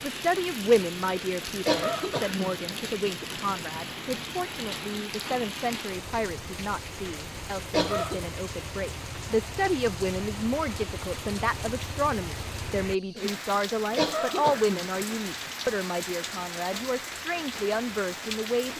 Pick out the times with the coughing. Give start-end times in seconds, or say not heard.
1.6-2.5, 7.7-8.2, 13.9-15.1.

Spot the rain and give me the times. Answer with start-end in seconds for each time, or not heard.
0.0-18.7.